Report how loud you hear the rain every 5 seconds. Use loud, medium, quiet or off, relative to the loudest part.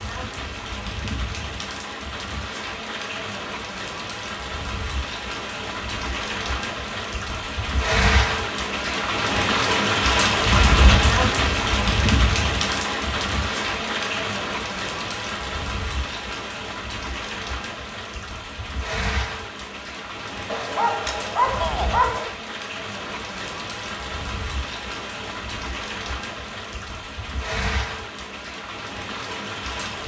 medium, loud, loud, medium, medium, medium.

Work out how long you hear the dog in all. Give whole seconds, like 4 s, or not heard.
2 s.